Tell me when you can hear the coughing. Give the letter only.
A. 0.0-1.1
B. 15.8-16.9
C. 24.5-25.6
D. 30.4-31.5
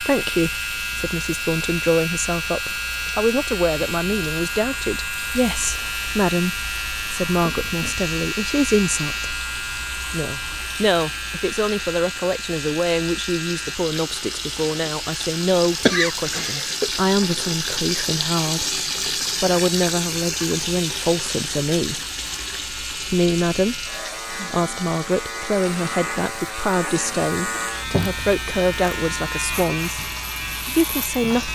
B.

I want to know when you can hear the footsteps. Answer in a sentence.
You can't hear the footsteps here.